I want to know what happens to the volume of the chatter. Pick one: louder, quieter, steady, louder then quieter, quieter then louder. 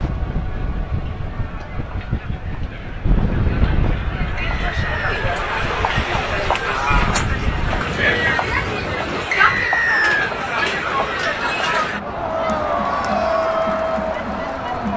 louder.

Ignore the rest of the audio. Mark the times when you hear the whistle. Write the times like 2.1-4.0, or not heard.
4.3-5.2, 9.3-10.3.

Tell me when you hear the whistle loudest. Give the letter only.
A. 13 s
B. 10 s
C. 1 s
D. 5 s
B.